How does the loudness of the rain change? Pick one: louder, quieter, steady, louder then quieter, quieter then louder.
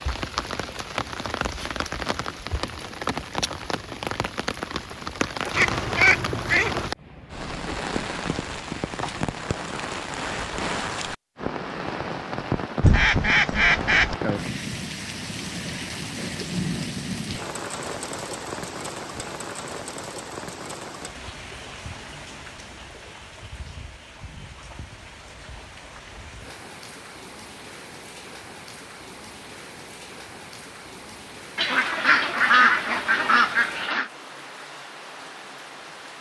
quieter.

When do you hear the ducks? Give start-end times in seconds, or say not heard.
5.5-6.9, 12.8-14.2, 31.6-34.1.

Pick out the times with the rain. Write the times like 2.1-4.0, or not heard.
0.0-36.1.